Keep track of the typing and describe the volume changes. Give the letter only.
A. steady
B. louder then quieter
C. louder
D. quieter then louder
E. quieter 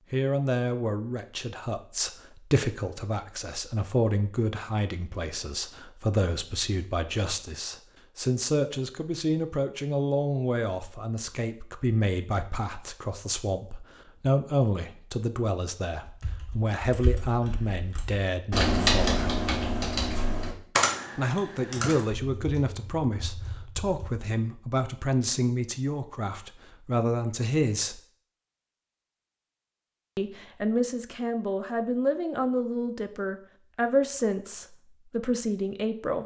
B.